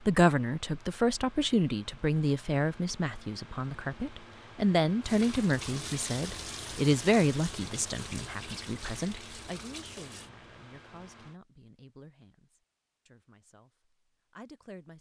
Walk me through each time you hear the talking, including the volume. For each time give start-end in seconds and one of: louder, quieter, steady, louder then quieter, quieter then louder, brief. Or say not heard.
0.0-13.7 quieter
14.3-14.9 brief.